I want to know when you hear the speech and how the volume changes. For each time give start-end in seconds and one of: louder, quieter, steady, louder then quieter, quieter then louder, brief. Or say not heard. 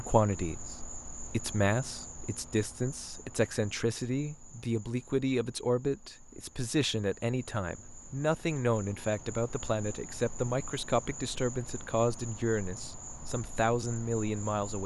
0.0-14.8 steady.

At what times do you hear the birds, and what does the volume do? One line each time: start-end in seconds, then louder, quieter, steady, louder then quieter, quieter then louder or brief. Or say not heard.
not heard.